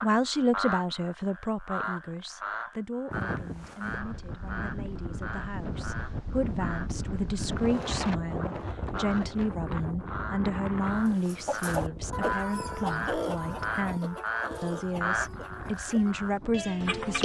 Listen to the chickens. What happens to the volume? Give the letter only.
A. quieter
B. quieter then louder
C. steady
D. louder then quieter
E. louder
A.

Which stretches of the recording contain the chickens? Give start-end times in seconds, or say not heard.
10.8-17.0.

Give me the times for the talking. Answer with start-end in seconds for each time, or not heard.
0.0-17.2.